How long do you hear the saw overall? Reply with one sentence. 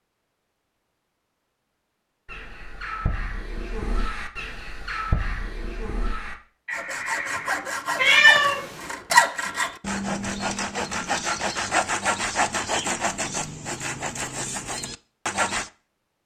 The saw can be heard for 9 seconds in total.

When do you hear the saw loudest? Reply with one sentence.
The volume of the saw peaks at 9 seconds.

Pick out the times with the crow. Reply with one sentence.
You can hear the crow from 2.2 to 7.6 s.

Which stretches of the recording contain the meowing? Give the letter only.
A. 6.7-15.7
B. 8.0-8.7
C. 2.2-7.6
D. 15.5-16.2
B.